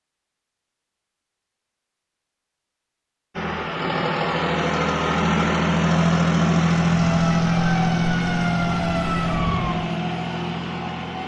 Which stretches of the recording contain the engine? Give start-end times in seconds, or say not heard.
3.4-11.2.